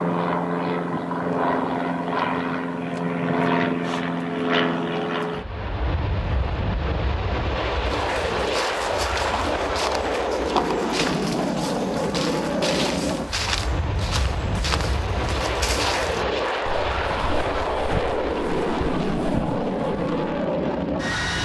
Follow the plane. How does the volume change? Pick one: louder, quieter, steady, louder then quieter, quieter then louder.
steady.